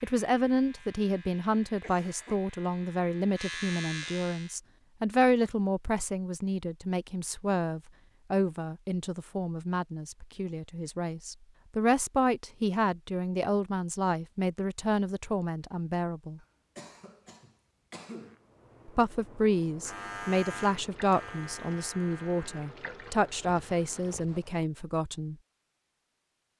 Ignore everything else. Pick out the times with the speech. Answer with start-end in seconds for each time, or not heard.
0.0-16.4, 18.9-25.4.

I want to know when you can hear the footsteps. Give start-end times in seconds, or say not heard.
not heard.